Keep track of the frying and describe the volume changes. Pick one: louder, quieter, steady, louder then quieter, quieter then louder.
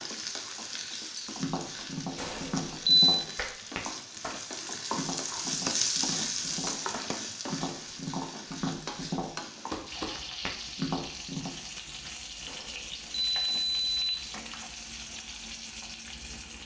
louder then quieter.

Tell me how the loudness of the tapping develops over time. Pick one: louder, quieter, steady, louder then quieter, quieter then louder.
quieter then louder.